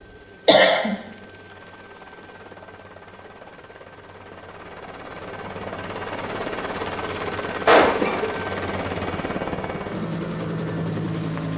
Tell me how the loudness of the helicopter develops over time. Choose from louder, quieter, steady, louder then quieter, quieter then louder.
louder.